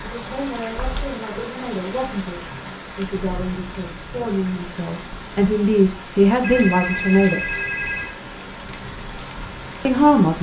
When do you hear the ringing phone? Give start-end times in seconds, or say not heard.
0.8-1.5, 6.4-8.2.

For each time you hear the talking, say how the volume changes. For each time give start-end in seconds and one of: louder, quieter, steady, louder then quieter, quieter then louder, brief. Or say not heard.
0.0-7.4 louder
9.8-10.3 brief.